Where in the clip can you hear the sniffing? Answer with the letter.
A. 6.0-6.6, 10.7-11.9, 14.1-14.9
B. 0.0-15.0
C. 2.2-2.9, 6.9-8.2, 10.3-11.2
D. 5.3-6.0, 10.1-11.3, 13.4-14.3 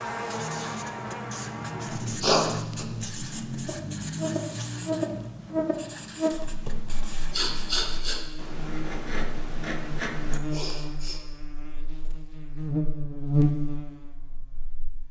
C.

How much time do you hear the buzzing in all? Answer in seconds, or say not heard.
15 s.